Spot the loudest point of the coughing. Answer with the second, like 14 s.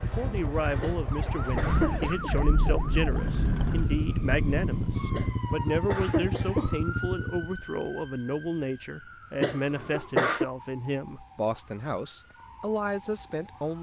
10 s.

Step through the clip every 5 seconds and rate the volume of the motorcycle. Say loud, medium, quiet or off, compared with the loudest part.
loud, loud, off.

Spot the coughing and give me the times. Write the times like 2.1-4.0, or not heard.
0.8-2.3, 5.1-6.8, 9.4-10.4.